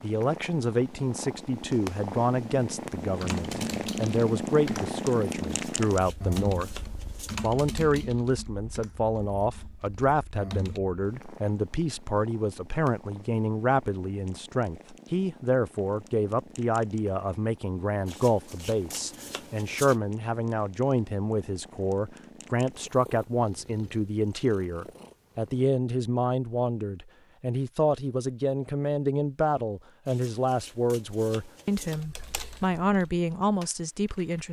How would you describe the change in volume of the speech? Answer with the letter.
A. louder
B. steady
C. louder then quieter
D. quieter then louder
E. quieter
B.